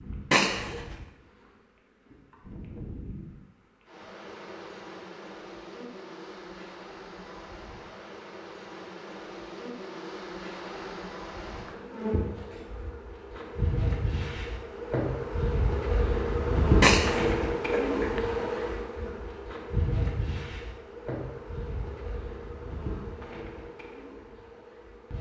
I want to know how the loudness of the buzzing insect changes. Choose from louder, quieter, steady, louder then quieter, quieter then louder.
louder then quieter.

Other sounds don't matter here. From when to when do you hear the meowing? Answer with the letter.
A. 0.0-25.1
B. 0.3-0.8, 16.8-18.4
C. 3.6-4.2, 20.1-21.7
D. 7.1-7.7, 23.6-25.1
B.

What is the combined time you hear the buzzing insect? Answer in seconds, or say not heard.
25 s.